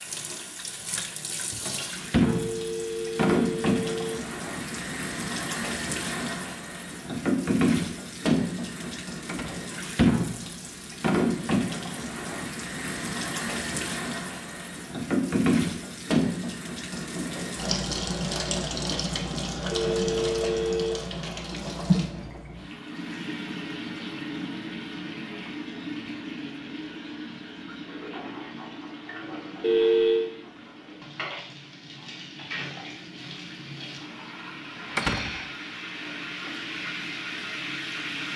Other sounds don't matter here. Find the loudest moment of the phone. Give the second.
30 s.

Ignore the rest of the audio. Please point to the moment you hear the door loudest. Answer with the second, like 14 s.
35 s.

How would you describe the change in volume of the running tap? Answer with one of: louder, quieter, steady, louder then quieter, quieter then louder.
quieter.